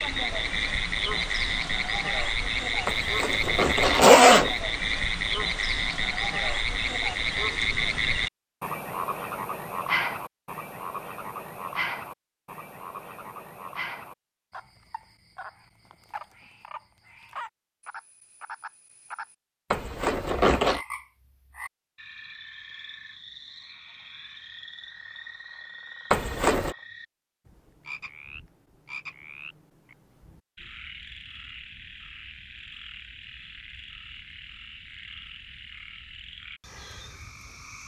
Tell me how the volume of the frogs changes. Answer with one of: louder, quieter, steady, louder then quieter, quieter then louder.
quieter.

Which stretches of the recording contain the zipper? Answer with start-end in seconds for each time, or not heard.
2.9-4.5, 19.7-20.8, 26.1-26.8.